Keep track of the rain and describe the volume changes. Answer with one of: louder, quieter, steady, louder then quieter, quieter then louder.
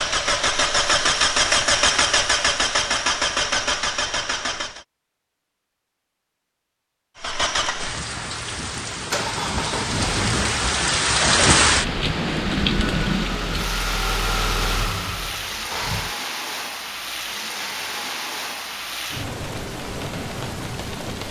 louder then quieter.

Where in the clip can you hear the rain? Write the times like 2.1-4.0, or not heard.
7.8-21.2.